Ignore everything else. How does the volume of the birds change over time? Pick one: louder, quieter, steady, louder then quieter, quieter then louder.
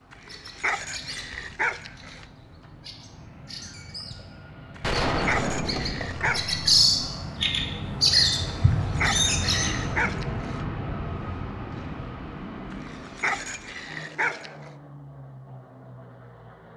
louder then quieter.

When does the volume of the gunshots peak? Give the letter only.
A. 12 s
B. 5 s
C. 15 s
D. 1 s
B.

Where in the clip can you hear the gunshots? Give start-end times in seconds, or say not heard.
4.8-6.6.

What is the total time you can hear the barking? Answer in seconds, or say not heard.
8 s.